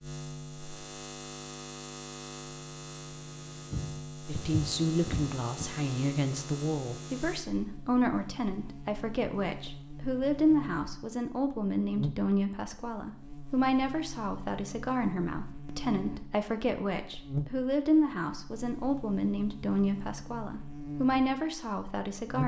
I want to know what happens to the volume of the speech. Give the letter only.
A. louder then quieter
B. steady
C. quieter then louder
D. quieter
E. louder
B.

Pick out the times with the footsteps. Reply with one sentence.
You can hear the footsteps from 3.7 to 5.7 s.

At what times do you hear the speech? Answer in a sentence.
The speech can be heard from 4.2 to 22.4 s.